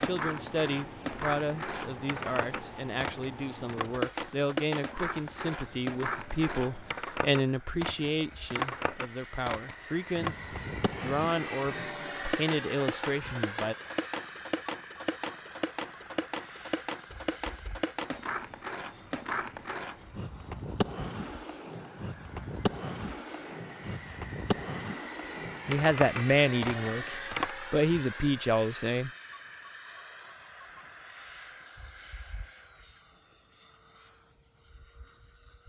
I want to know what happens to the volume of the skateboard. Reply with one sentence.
The volume of the skateboard stays about the same.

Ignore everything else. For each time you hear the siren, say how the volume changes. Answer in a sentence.
The siren can't be heard in this clip.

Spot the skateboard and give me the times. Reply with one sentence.
The skateboard can be heard from 0.0 to 27.6 s.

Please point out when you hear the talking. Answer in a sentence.
The talking can be heard from 0.0 to 13.8 s and from 25.6 to 29.1 s.